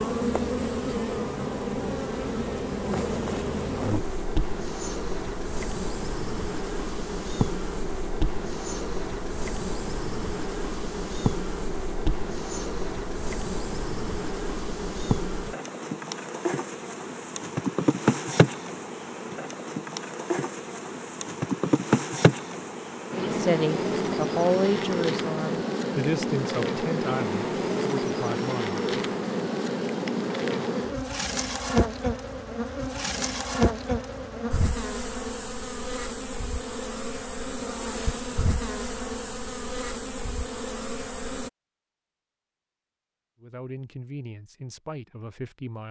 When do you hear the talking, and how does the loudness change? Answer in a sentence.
You can hear the talking from 23.1 to 28.8 s, getting quieter; and briefly from 43.4 to 45.8 s.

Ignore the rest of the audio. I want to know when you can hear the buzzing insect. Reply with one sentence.
The buzzing insect can be heard from 0.0 to 41.5 s.